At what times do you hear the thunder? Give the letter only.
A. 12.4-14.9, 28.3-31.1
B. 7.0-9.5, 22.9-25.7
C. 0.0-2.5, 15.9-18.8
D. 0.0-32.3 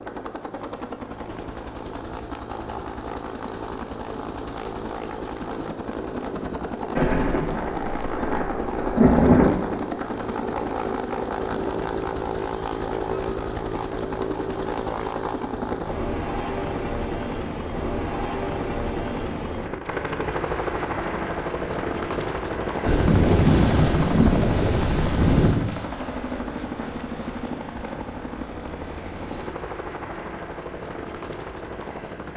B.